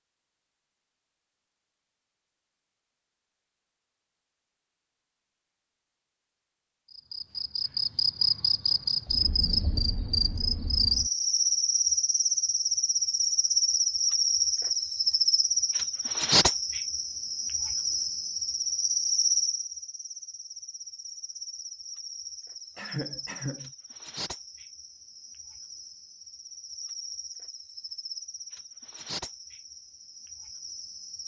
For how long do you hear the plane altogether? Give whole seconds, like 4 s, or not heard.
not heard.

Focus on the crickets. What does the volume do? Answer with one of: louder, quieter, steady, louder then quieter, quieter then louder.
quieter.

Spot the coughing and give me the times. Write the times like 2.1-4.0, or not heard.
22.8-23.7.